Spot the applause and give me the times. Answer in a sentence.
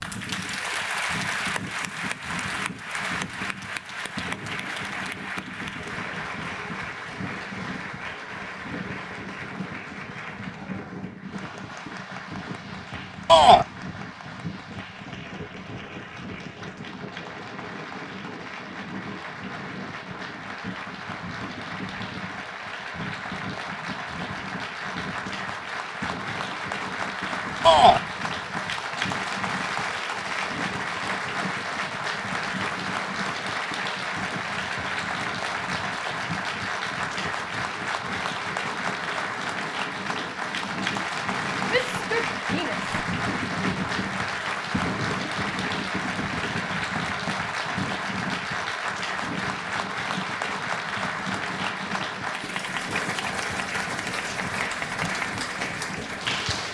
You can hear the applause from 0.0 to 56.6 s.